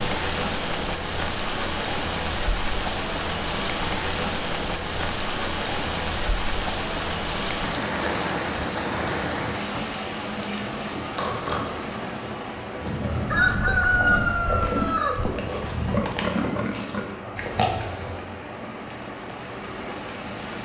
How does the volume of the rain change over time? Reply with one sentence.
The loudness of the rain goes down.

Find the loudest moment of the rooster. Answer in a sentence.
The volume of the rooster peaks at 14 seconds.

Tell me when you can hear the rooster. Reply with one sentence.
You can hear the rooster from 13.2 to 15.3 s.